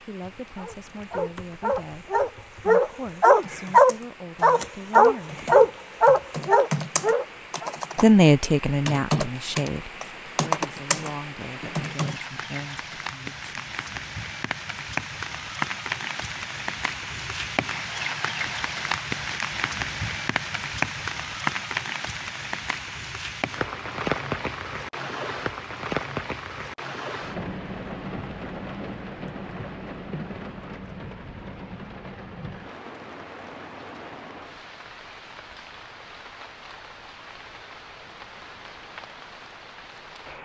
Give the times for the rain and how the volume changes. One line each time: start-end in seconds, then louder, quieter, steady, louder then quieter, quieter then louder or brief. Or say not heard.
0.0-40.4 louder then quieter.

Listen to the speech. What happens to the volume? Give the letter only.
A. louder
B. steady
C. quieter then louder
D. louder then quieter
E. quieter
D.